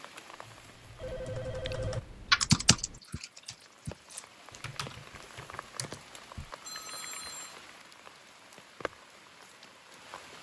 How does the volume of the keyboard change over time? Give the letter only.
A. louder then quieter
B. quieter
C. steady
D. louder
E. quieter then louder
A.